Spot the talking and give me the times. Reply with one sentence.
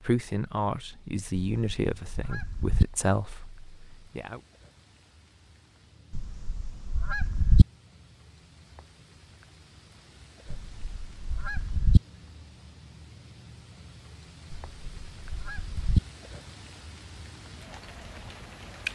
The talking can be heard from 0.0 to 4.4 s.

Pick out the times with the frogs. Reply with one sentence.
The frogs can't be heard in this clip.